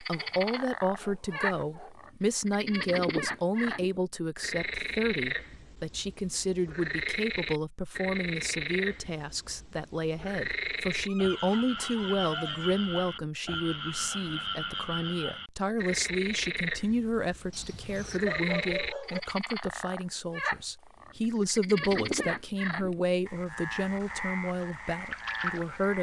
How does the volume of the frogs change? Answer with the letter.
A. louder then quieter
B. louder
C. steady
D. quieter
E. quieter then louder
C.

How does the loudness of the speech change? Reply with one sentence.
The volume of the speech stays about the same.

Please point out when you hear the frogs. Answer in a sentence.
The frogs can be heard from 0.0 to 25.9 s.